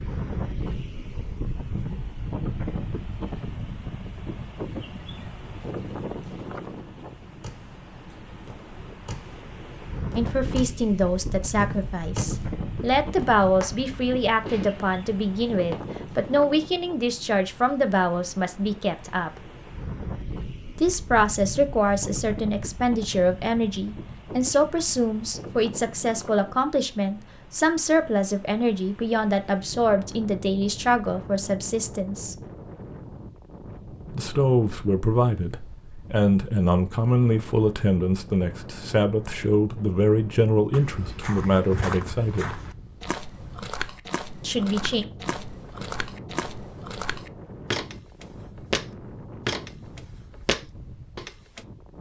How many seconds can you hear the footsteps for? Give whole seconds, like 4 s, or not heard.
11 s.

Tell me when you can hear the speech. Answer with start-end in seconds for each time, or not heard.
10.2-19.4, 20.8-32.4, 34.1-42.6, 44.4-45.0.